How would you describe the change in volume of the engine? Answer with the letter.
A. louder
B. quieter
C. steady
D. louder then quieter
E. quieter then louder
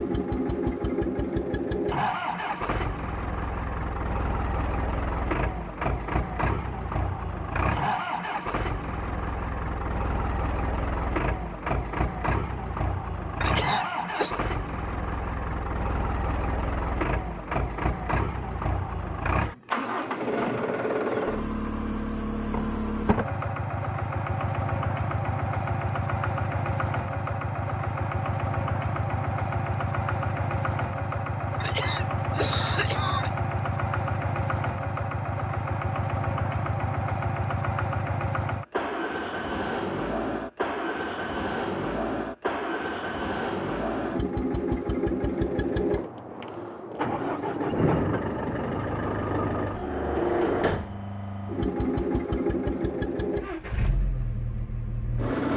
C.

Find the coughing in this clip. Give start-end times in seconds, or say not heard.
13.4-14.3, 31.6-33.3.